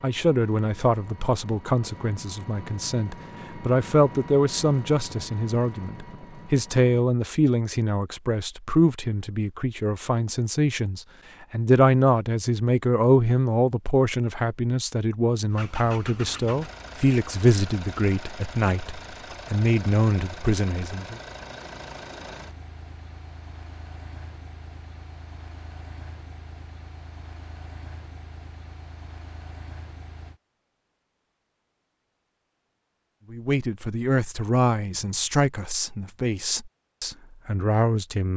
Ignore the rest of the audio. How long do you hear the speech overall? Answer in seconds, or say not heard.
26 s.